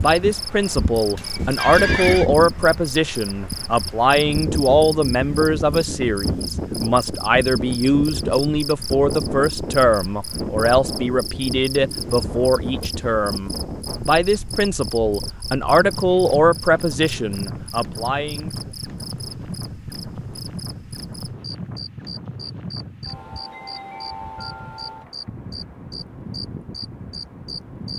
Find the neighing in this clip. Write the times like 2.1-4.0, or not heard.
1.1-2.3.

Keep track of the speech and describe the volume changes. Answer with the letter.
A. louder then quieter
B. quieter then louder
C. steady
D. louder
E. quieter
C.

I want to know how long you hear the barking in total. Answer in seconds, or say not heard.
not heard.